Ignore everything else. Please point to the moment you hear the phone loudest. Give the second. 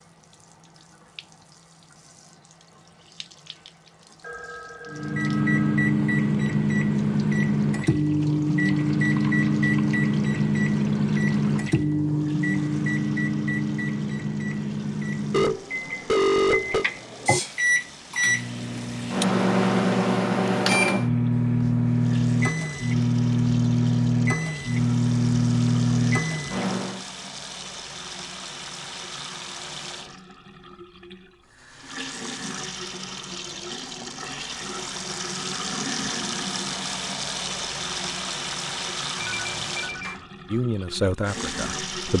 16 s.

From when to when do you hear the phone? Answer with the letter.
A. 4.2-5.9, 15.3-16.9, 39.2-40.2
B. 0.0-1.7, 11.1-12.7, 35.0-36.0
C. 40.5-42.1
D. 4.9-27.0
A.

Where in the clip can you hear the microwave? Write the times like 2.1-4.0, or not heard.
4.9-27.0.